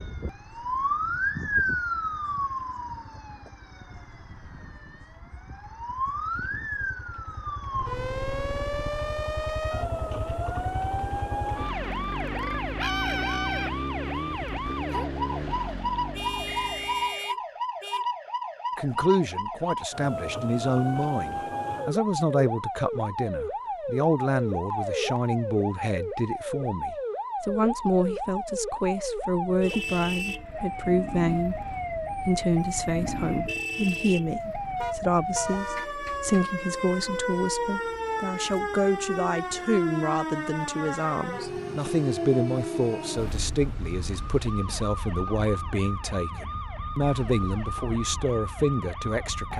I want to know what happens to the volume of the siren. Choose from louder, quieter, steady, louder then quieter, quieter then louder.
steady.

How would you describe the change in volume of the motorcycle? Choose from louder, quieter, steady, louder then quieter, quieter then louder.
louder.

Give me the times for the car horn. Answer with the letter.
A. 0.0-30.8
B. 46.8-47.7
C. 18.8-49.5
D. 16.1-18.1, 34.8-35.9
D.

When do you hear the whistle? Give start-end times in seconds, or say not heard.
16.4-17.4.